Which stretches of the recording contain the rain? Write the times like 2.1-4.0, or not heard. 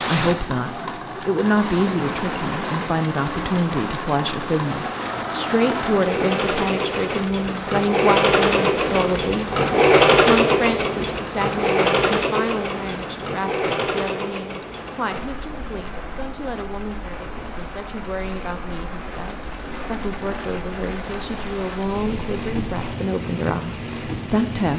0.0-24.7.